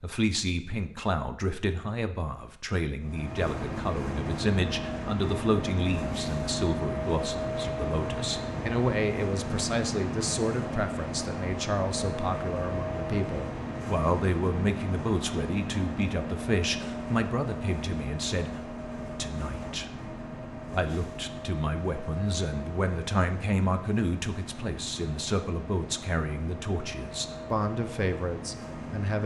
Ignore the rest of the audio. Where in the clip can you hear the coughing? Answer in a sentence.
You can't hear the coughing here.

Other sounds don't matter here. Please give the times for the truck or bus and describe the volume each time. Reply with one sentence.
The truck or bus can be heard from 3.0 to 29.2 s, getting quieter.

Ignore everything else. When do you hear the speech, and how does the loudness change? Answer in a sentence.
The speech can be heard from 0.0 to 29.2 s, at a steady volume.